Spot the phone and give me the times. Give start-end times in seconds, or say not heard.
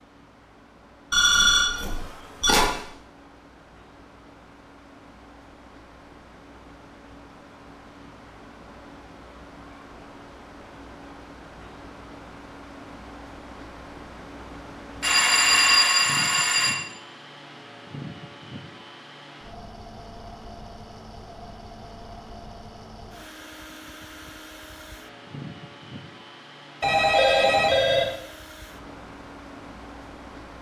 1.1-2.8, 15.0-16.8, 26.8-28.1.